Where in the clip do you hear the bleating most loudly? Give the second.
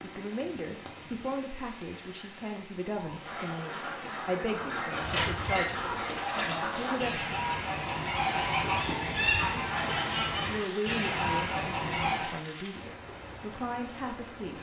5 s.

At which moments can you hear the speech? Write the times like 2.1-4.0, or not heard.
0.0-7.3, 10.4-14.5.